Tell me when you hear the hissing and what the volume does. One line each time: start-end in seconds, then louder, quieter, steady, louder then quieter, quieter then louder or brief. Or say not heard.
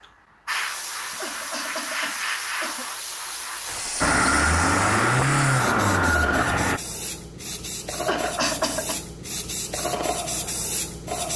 0.0-11.3 steady.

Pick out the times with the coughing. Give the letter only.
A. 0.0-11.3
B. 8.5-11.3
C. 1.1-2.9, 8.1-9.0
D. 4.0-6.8
C.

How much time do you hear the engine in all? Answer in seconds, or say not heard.
3 s.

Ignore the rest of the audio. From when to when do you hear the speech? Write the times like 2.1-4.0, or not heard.
not heard.